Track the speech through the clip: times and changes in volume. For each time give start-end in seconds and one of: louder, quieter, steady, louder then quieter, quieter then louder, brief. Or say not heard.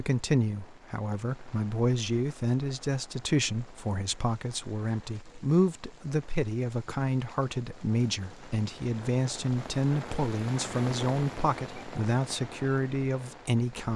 0.0-13.9 steady.